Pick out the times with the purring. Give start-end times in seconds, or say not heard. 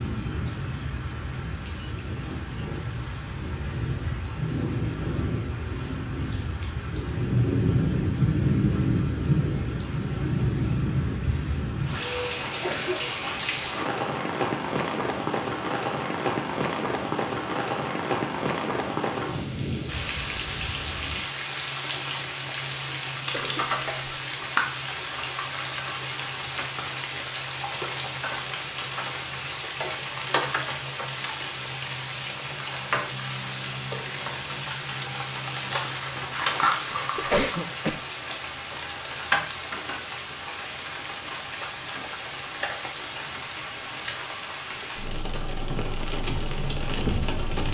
not heard.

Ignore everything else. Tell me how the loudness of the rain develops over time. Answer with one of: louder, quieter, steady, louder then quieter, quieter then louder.
steady.